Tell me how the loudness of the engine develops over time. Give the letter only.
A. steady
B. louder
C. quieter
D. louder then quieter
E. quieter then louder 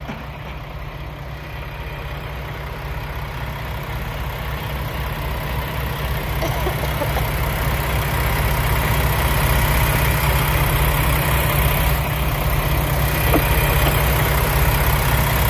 B.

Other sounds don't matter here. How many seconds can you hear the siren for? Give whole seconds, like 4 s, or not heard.
not heard.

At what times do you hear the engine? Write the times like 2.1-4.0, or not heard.
0.0-15.4.